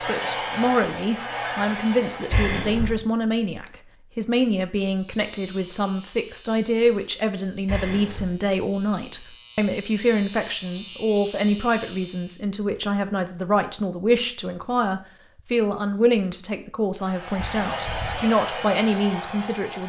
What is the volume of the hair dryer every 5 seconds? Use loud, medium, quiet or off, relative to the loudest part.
loud, off, off, loud.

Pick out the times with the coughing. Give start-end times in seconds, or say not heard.
2.3-3.0, 7.7-8.3, 17.4-18.2.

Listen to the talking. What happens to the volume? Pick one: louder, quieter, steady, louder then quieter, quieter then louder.
steady.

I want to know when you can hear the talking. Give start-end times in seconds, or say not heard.
0.1-19.8.